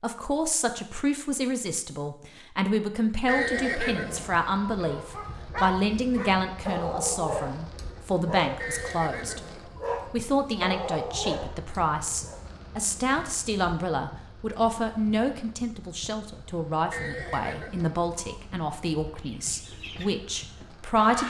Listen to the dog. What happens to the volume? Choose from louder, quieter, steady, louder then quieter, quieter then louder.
steady.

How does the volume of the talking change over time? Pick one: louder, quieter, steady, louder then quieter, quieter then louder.
steady.